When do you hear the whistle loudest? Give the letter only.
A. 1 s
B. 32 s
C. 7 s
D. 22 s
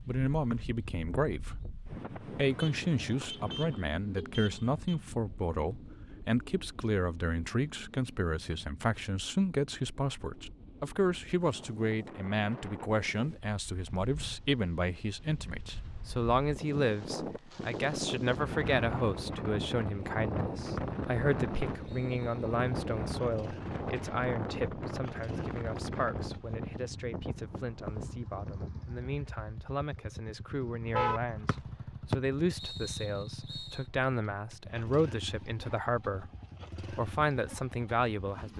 B.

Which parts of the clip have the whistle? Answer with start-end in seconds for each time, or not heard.
0.5-1.6, 20.8-22.4, 31.4-33.9.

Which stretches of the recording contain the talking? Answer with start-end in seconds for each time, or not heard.
0.1-36.3, 36.9-38.5.